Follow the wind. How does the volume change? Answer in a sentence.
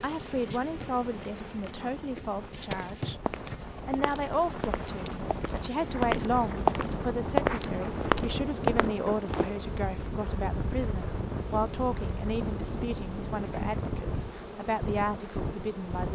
The volume of the wind goes up.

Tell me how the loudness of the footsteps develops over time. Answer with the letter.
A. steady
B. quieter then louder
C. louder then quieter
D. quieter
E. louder
E.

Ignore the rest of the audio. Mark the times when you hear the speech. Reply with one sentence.
The speech can be heard from 0.0 to 3.2 s and from 3.9 to 16.1 s.